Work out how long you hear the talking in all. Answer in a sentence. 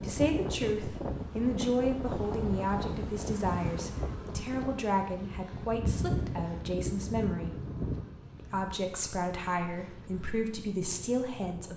You can hear the talking for 11 seconds altogether.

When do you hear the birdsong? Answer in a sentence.
You can't hear the birdsong here.